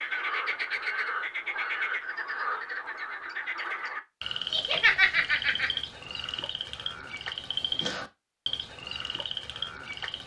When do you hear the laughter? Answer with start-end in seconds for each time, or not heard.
4.5-5.8.